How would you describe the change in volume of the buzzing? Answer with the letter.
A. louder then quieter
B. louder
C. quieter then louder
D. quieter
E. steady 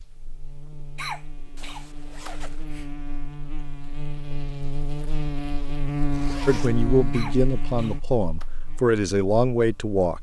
A.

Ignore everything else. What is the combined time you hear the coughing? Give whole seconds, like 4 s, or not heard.
3 s.